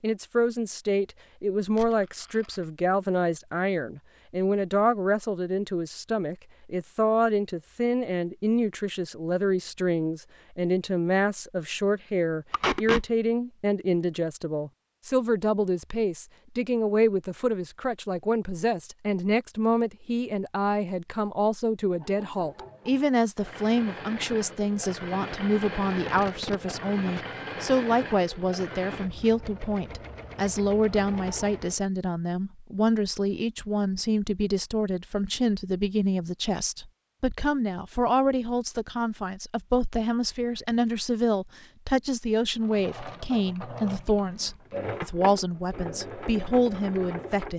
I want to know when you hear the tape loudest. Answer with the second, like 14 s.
13 s.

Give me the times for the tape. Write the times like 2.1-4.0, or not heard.
12.5-13.1, 26.1-27.3, 40.4-40.9.